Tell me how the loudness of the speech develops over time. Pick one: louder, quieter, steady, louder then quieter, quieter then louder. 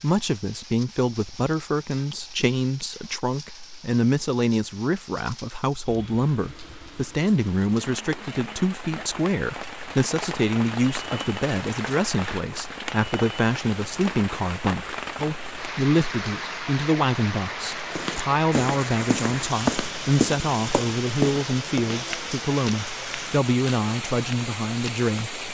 steady.